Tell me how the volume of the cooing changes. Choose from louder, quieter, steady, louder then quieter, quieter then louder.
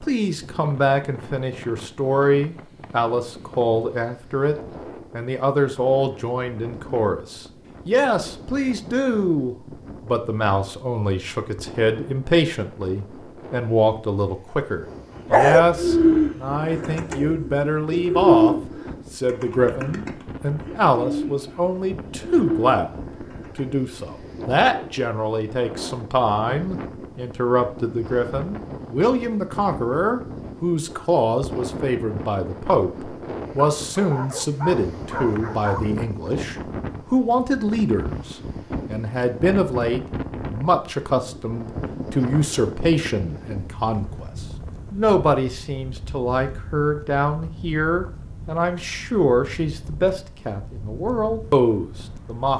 quieter then louder.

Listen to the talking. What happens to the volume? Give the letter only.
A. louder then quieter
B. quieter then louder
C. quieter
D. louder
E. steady
E.